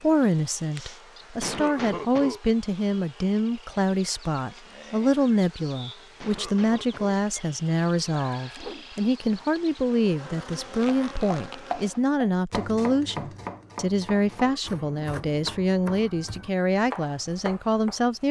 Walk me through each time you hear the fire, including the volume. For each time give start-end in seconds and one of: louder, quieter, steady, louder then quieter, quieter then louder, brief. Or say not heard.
not heard.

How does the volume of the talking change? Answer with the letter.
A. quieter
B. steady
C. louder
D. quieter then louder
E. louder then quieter
B.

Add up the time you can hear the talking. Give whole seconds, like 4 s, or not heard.
18 s.